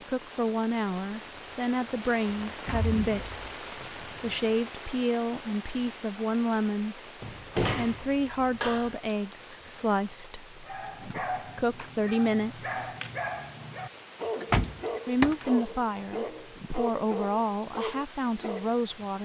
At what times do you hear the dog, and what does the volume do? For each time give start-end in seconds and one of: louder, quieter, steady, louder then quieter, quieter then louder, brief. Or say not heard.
10.7-18.8 steady.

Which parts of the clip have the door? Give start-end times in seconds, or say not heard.
2.5-3.3, 7.2-8.9, 14.3-15.3.